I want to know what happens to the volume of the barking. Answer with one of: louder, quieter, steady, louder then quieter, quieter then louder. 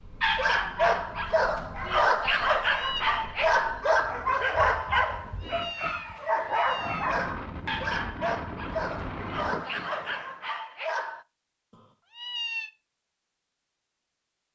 quieter.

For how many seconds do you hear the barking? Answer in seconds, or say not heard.
11 s.